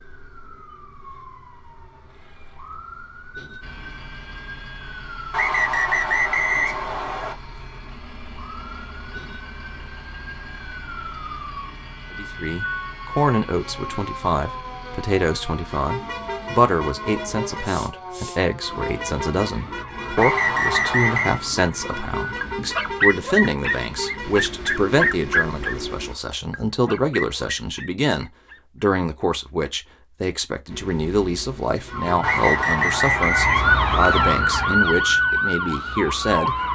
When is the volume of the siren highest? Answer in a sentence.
The volume of the siren peaks at 34 seconds.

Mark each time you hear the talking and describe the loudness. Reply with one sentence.
The talking can be heard from 12.1 to 36.5 s, at a steady volume.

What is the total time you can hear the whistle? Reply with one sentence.
The whistle can be heard for 5 seconds in total.